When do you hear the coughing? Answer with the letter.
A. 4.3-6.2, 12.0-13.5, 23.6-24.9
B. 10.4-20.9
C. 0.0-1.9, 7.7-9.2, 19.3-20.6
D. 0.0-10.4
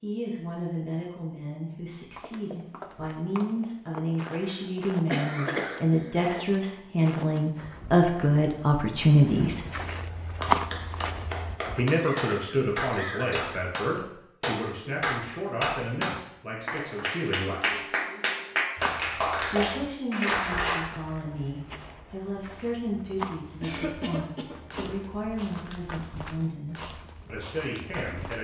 A.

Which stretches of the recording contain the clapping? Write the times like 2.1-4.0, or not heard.
10.4-20.9.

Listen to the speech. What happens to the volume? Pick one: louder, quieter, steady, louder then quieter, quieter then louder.
louder then quieter.